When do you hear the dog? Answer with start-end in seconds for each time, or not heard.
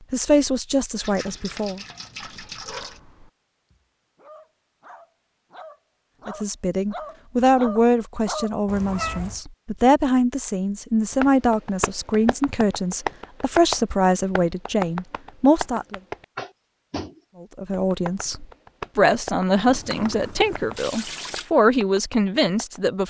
2.4-8.6.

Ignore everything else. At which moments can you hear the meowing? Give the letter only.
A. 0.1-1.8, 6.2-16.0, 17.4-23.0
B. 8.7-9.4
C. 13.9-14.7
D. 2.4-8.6
B.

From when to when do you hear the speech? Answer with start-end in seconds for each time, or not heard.
0.1-1.8, 6.2-16.0, 17.4-23.0.